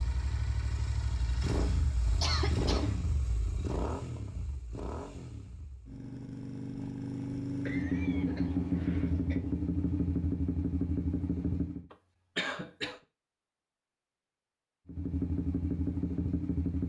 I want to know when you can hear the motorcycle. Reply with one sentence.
The motorcycle can be heard from 0.0 to 11.8 s and from 14.8 to 16.8 s.